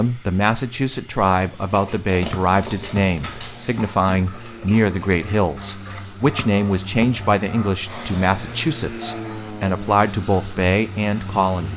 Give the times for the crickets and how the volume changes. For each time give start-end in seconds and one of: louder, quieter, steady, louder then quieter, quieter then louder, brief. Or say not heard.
not heard.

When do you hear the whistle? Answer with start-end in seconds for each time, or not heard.
2.3-3.0, 6.3-7.0.